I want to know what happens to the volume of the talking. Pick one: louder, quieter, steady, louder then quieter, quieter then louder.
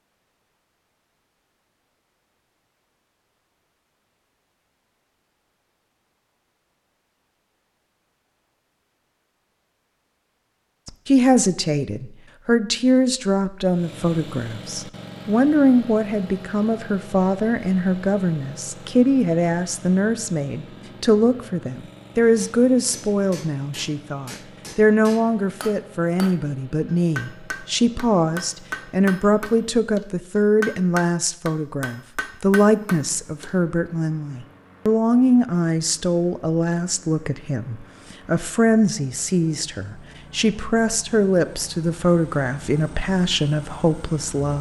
steady.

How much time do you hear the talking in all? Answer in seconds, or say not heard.
34 s.